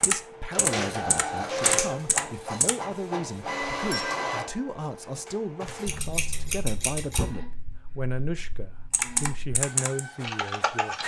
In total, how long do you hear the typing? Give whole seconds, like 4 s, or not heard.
5 s.